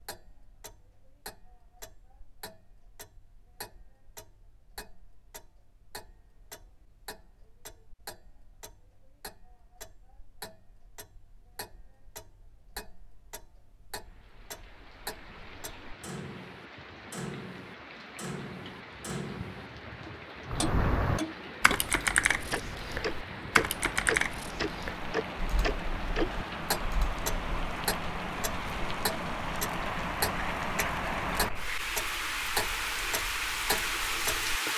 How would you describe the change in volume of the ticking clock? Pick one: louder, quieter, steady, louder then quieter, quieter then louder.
louder.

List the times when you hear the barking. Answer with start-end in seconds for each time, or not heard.
not heard.